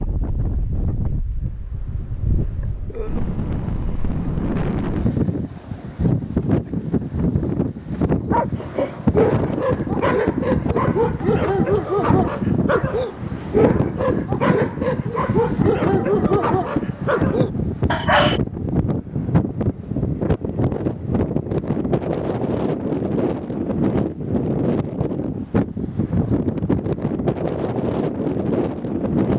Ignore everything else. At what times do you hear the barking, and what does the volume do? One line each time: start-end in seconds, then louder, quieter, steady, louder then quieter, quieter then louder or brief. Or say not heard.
8.3-18.4 steady.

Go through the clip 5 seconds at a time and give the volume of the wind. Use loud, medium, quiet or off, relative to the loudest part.
medium, loud, loud, loud, loud, loud.